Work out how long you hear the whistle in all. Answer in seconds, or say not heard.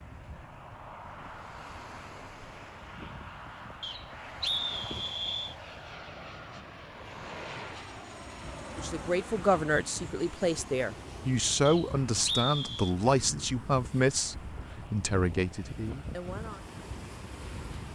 3 s.